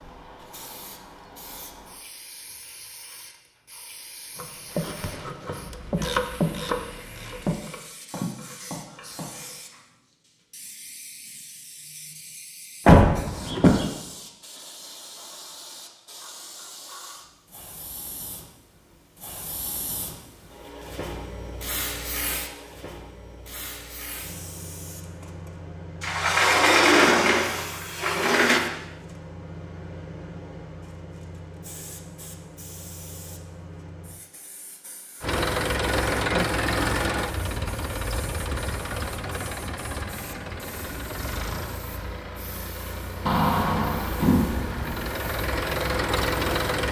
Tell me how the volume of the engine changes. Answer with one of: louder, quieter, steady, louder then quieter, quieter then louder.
quieter then louder.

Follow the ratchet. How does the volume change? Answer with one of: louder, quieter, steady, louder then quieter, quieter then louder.
louder then quieter.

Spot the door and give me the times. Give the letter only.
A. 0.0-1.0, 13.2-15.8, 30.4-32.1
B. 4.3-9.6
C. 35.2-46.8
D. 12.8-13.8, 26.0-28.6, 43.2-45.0
D.